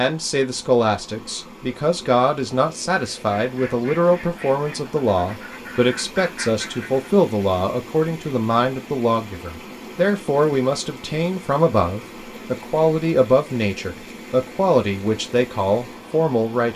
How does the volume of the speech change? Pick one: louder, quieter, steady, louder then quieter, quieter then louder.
steady.